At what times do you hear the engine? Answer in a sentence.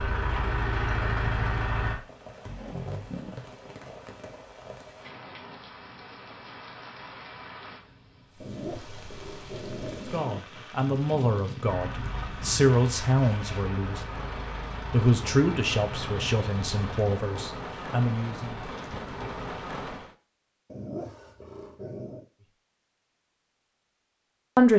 You can hear the engine from 0.0 to 2.0 s and from 11.6 to 17.1 s.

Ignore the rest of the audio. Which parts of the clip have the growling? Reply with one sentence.
You can hear the growling from 2.5 to 3.5 s, from 8.4 to 10.4 s and from 20.7 to 22.3 s.